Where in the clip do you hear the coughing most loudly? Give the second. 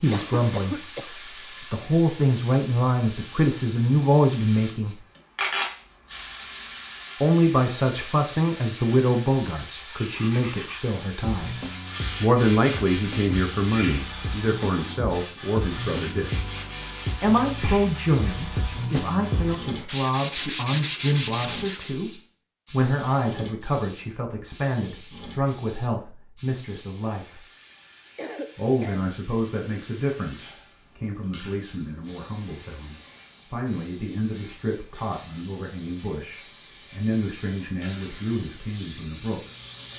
1 s.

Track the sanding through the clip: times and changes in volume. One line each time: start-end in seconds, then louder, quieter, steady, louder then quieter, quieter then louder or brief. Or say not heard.
9.9-21.9 louder.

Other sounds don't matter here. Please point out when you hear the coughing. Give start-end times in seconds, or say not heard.
0.1-1.1, 28.1-29.1.